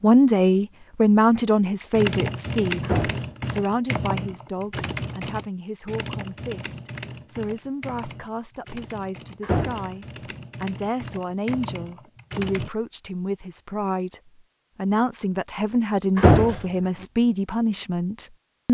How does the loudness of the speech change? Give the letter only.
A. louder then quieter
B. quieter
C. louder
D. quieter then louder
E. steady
D.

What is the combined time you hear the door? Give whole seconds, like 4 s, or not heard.
2 s.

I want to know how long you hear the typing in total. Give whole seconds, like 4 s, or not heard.
11 s.